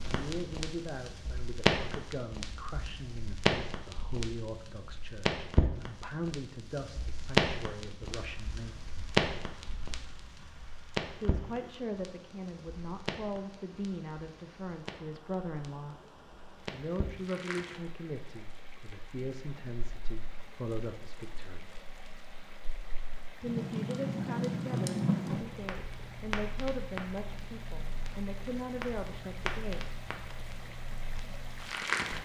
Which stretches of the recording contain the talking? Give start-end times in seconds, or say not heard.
0.1-8.8, 11.2-15.9, 16.7-21.6, 23.4-29.9.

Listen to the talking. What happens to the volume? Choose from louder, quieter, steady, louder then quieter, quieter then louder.
steady.